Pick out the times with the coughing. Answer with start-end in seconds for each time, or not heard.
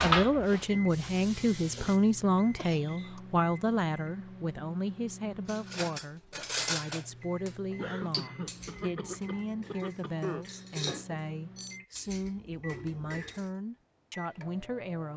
2.5-3.2, 7.8-10.4.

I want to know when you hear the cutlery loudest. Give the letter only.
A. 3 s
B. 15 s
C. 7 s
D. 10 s
C.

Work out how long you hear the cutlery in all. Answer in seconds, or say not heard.
8 s.